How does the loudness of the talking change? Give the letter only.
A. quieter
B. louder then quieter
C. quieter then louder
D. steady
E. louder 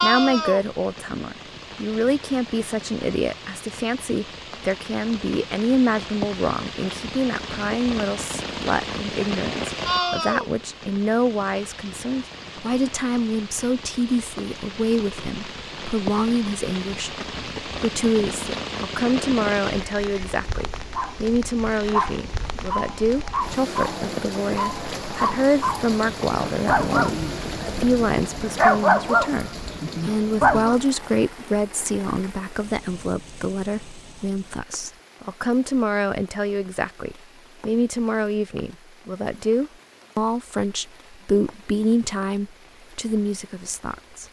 D.